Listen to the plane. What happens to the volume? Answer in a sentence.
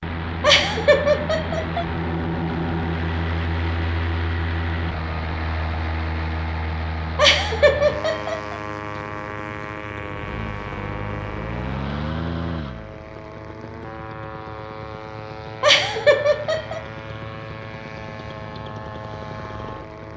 The loudness of the plane goes down.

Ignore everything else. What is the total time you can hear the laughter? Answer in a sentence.
You can hear the laughter for 4 seconds altogether.